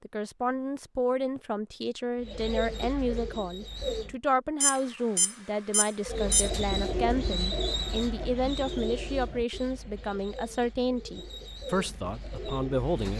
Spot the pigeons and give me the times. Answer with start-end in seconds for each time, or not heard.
2.1-4.2, 6.0-13.1.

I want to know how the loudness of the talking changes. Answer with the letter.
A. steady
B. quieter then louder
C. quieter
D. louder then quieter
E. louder
A.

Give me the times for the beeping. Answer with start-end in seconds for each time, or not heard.
4.6-6.5.